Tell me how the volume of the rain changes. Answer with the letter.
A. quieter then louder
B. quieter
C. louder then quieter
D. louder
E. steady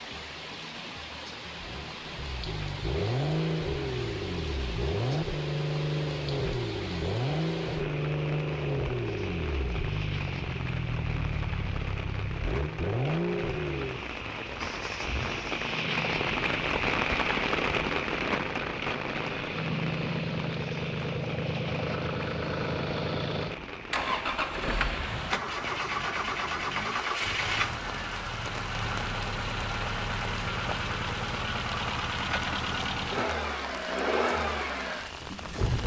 C.